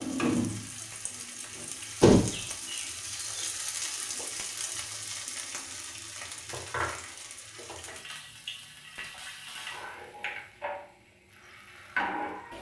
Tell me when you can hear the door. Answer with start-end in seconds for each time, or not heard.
2.0-3.5.